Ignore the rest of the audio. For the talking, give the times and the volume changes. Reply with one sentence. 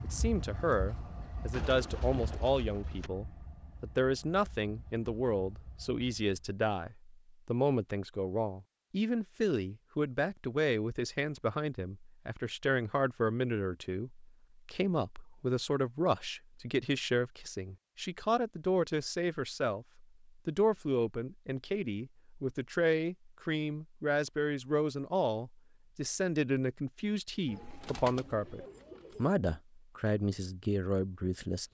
You can hear the talking from 0.0 to 31.7 s, at a steady volume.